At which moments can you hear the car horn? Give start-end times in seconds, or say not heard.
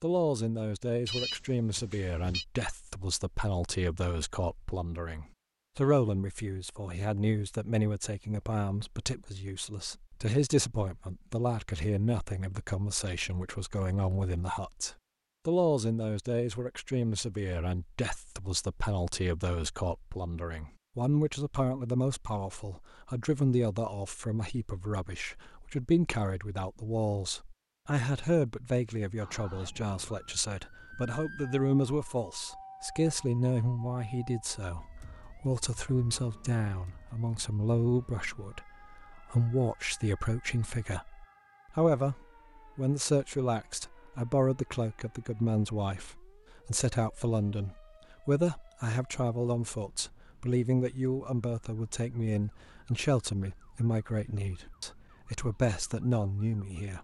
not heard.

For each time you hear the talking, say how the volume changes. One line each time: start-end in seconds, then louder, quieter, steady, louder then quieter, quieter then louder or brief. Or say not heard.
0.0-56.9 steady.